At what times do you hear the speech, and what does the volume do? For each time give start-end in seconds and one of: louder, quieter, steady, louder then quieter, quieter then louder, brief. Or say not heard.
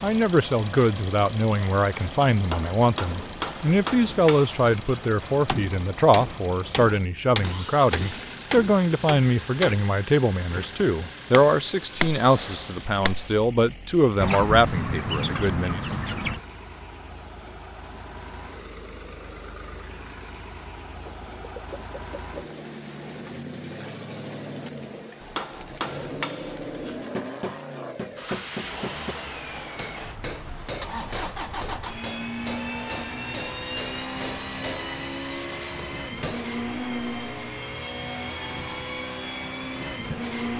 0.0-15.8 steady.